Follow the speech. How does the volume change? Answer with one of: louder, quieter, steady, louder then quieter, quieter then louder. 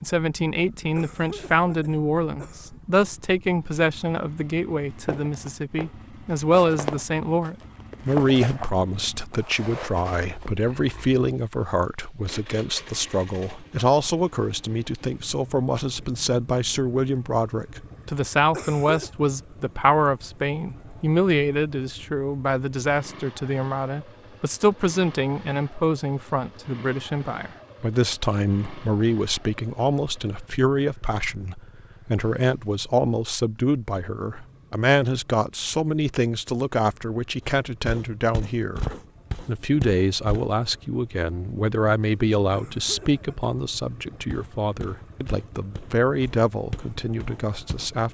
steady.